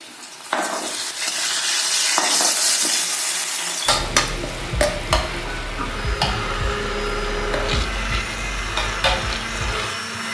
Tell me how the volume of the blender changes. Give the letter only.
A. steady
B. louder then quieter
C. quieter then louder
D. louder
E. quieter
D.